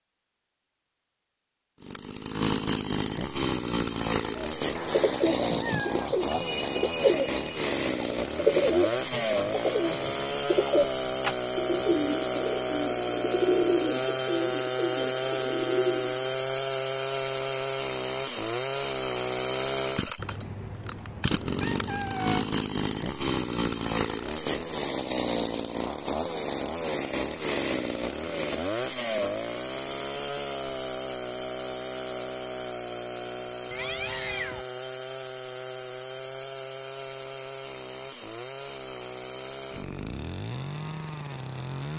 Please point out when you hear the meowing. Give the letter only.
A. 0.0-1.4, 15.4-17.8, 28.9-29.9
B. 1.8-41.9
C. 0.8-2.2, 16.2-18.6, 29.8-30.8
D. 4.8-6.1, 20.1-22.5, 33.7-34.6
D.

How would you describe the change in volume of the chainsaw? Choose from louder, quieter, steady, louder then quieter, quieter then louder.
quieter.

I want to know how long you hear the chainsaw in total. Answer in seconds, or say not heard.
40 s.